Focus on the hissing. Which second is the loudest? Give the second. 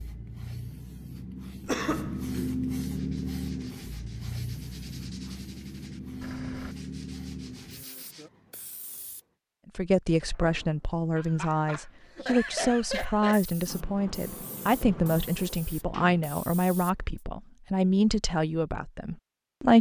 3 s.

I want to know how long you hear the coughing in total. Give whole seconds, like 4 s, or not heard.
3 s.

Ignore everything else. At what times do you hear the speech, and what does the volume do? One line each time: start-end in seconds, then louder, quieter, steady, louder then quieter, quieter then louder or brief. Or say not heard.
9.8-19.7 steady.